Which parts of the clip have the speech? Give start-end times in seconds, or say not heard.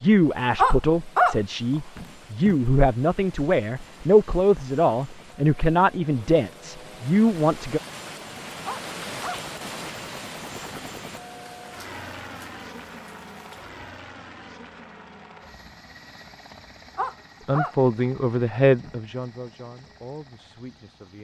0.0-7.8, 17.4-21.1.